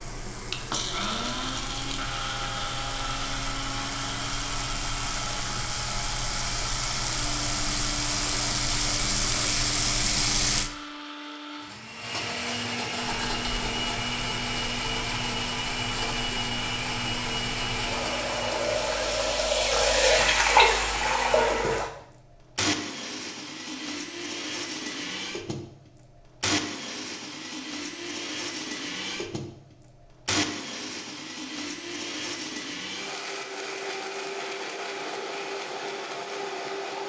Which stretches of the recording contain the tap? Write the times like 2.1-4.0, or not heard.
0.0-10.7, 13.1-21.9.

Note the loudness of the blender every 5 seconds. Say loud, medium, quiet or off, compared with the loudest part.
loud, medium, loud, loud, loud, loud, loud, loud.